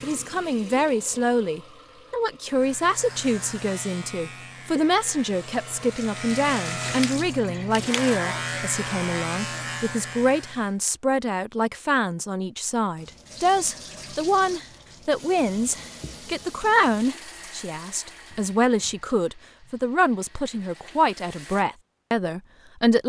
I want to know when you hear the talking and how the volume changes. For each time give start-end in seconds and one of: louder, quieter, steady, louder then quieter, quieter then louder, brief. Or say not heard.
0.0-23.0 steady.